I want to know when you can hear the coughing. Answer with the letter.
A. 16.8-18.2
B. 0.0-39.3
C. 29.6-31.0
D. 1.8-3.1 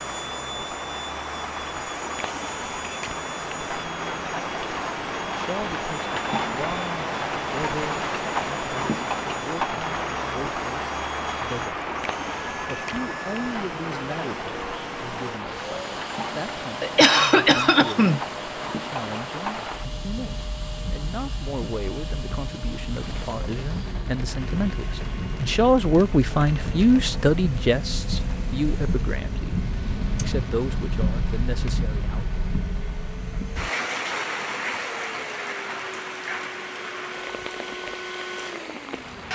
A.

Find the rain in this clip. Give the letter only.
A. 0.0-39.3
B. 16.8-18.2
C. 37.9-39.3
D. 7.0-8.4
A.